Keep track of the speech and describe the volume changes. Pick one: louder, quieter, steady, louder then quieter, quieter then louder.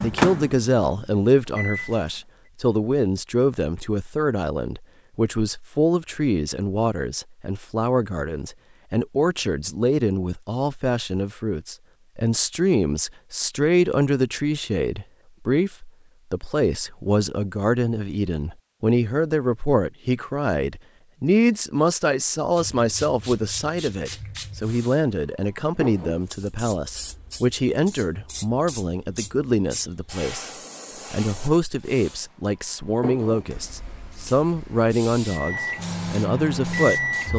steady.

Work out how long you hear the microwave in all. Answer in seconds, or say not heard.
4 s.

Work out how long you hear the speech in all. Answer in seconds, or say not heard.
37 s.